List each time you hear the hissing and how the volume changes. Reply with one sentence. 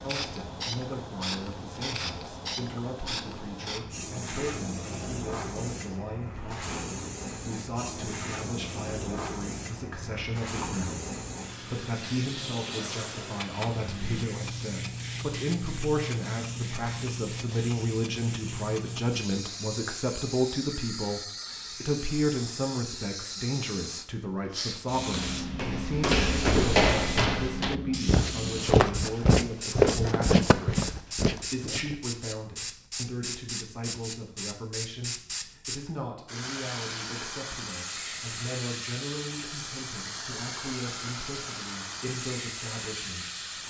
You can hear the hissing from 0.0 to 43.6 s, at a steady volume.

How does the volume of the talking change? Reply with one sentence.
The volume of the talking goes up, then down.